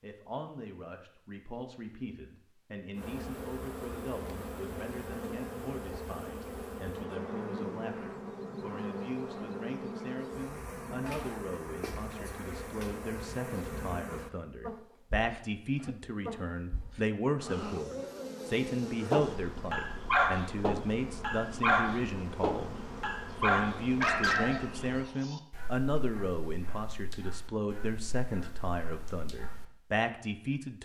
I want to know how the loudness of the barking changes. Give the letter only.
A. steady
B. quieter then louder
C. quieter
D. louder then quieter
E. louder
C.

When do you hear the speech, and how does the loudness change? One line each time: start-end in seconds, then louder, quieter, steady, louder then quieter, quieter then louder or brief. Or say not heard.
0.0-30.7 louder.